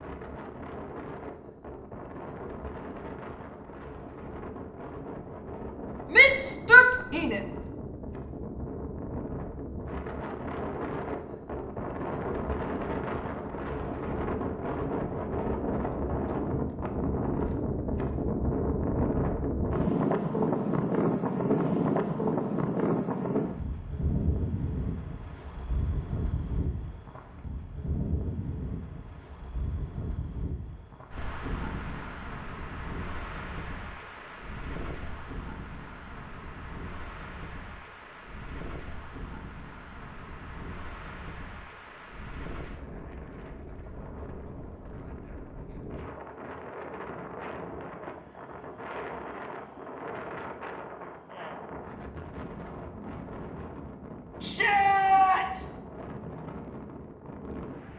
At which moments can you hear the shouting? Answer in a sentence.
The shouting can be heard from 6.1 to 7.4 s and from 54.4 to 55.6 s.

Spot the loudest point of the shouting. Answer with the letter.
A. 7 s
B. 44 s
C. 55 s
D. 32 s
A.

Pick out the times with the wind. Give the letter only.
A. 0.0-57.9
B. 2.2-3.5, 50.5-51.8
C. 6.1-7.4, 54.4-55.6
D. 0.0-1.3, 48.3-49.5
A.